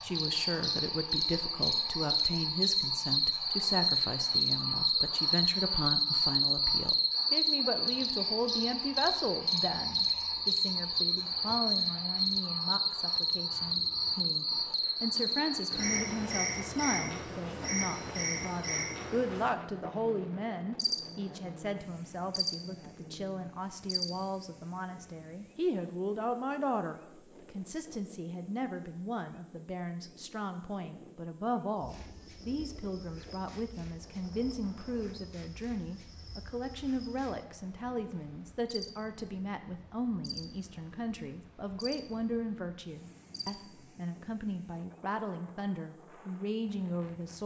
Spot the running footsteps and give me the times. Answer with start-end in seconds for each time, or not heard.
not heard.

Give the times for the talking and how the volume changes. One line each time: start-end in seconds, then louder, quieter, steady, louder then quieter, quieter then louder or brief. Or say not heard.
0.0-47.4 steady.